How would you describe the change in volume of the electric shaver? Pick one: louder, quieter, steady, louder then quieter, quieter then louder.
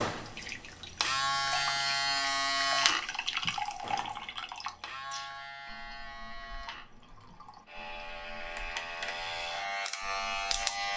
quieter then louder.